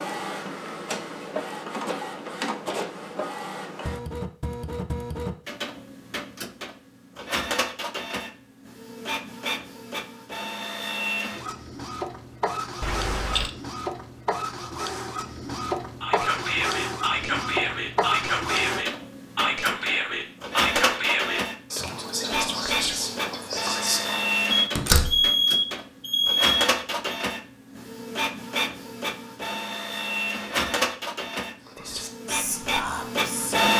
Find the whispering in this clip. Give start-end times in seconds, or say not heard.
16.0-24.3, 31.6-33.6.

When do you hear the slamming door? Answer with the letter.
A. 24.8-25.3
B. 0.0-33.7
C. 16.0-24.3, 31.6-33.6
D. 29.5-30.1
A.